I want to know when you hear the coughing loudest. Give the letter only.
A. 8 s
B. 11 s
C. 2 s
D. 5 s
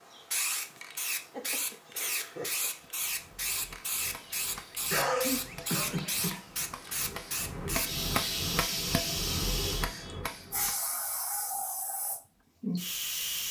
D.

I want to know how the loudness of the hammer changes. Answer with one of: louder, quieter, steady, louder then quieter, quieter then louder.
louder.